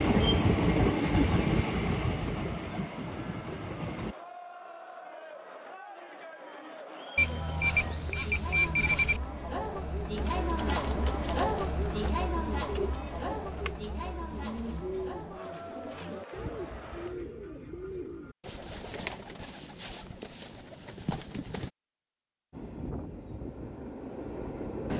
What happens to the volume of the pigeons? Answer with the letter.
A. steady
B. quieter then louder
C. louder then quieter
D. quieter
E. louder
A.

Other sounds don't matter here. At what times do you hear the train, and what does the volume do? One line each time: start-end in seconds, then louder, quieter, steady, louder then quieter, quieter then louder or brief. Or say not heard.
0.0-4.2 quieter
22.5-24.9 brief.